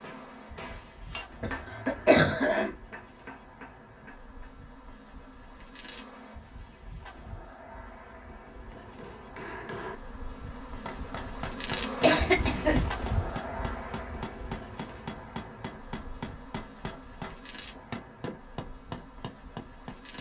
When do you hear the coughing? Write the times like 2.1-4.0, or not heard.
1.4-2.7, 12.0-12.9.